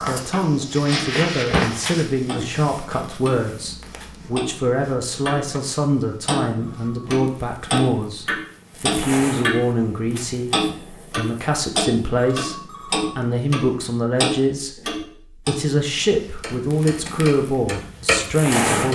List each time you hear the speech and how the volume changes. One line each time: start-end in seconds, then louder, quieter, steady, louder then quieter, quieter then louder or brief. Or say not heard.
0.0-18.8 steady.